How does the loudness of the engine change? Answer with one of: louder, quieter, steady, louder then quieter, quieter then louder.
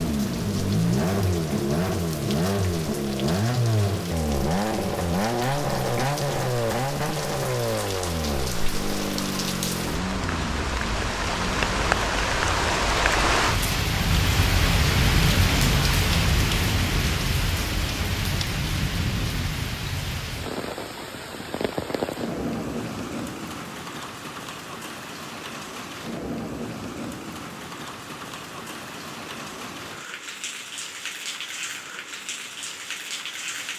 quieter.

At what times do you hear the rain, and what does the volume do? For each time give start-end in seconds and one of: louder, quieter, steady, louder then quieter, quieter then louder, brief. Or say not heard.
0.0-33.7 louder then quieter.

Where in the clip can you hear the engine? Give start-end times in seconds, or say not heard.
0.0-12.1.